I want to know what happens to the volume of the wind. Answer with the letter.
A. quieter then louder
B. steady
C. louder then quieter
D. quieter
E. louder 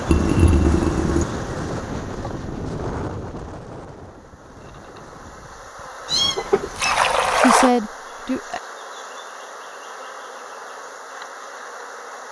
D.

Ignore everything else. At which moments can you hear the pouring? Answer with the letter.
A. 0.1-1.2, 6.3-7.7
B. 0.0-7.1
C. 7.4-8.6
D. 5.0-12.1
A.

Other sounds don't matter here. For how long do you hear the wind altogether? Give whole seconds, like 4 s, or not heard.
7 s.